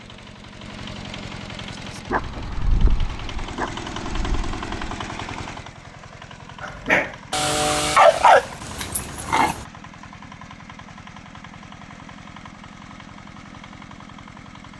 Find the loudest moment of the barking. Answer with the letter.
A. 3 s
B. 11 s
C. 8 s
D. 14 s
C.